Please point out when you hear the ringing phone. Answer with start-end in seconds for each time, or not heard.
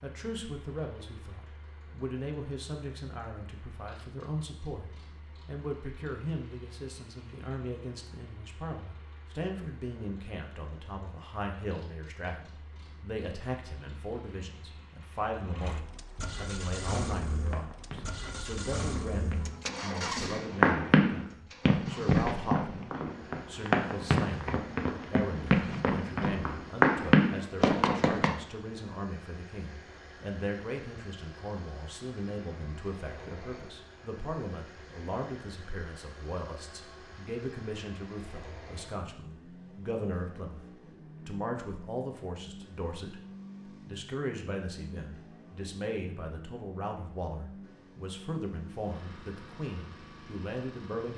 not heard.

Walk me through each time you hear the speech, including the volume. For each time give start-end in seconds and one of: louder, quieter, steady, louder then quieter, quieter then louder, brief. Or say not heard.
0.0-51.1 steady.